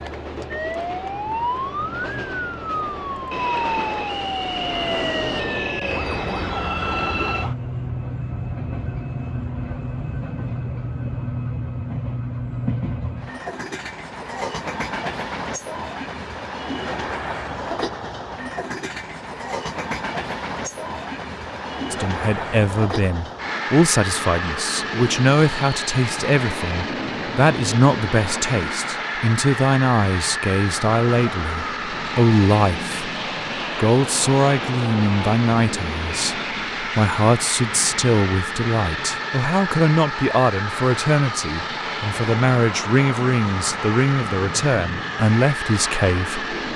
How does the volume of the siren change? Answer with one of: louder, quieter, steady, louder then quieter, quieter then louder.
steady.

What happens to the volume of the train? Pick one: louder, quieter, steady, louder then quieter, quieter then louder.
steady.